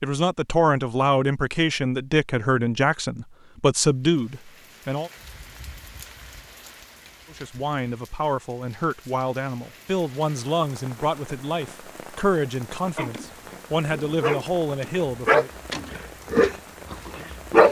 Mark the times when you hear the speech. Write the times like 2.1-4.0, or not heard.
0.0-5.1, 7.3-15.5.